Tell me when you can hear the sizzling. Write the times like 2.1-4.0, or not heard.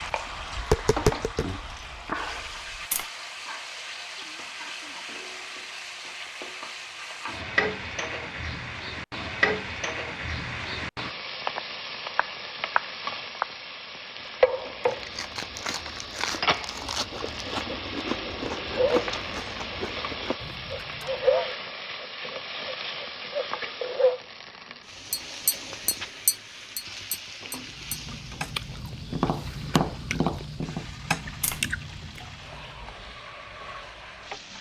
0.0-34.5.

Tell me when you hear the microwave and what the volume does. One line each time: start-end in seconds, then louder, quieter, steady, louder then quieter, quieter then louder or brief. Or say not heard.
not heard.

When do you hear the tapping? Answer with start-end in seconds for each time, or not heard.
0.0-3.0, 25.1-31.6.